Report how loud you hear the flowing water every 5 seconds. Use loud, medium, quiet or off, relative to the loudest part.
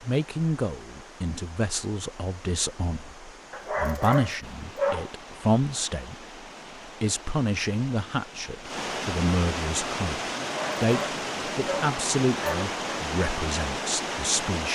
quiet, medium, loud.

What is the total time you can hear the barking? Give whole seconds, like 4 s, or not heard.
4 s.